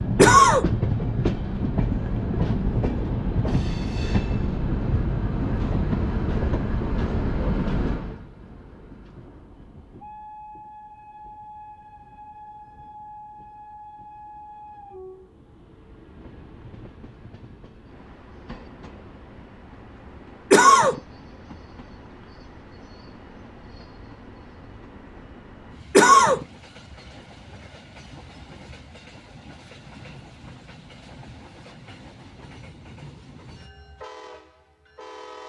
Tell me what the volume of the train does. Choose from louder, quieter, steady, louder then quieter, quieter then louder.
quieter.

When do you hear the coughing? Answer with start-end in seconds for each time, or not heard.
0.1-0.7, 20.5-21.0, 25.9-26.4.